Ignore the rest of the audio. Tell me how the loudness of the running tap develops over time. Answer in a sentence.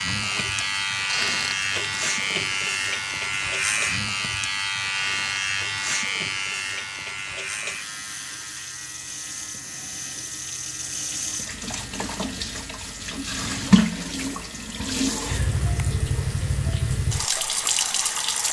The volume of the running tap goes down, then up.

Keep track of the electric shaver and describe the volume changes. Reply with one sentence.
The loudness of the electric shaver goes down.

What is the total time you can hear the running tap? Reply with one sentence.
You can hear the running tap for 18 seconds altogether.